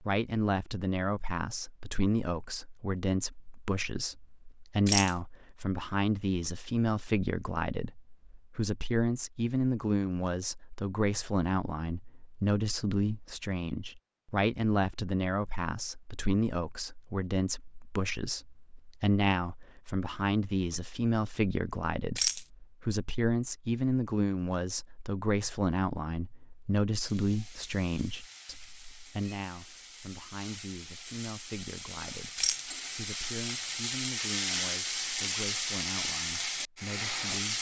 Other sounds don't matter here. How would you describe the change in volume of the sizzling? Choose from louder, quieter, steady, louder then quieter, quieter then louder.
louder.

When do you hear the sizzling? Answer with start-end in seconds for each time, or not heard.
27.0-37.5.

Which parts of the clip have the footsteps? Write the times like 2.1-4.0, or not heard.
not heard.